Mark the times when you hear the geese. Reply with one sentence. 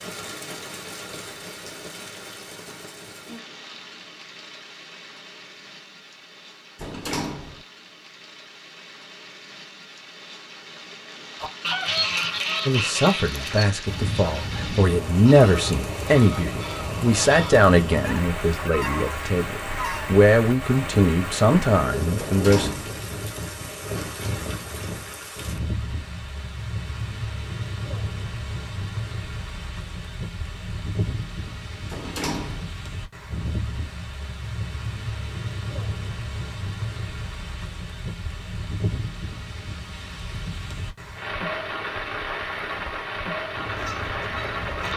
You can hear the geese from 11.4 to 20.1 s and from 43.5 to 44.9 s.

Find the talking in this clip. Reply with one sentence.
The talking can be heard from 12.7 to 22.7 s.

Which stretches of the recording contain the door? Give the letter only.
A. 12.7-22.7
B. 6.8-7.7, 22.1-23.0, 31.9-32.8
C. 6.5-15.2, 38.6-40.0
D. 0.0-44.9
B.